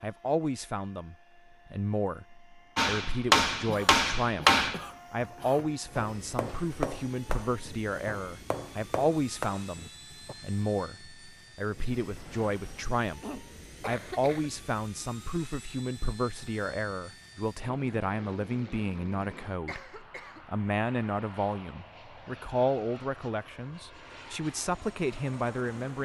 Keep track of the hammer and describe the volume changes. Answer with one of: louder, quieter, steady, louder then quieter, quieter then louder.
quieter.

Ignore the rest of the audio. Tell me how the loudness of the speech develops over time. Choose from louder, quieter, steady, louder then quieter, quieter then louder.
steady.